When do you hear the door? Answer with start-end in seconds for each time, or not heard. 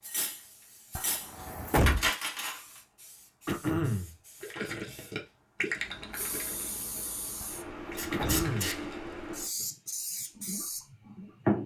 0.9-2.1, 7.4-8.5.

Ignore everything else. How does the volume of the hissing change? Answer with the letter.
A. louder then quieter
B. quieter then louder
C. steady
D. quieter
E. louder
E.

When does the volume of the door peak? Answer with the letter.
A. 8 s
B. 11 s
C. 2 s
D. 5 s
C.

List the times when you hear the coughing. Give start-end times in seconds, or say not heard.
3.5-4.2, 8.1-8.8.